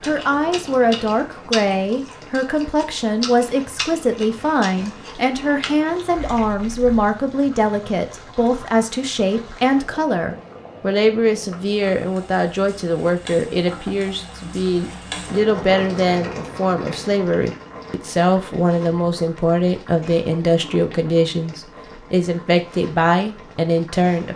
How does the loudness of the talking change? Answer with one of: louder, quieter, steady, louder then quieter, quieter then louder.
steady.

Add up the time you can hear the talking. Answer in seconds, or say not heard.
24 s.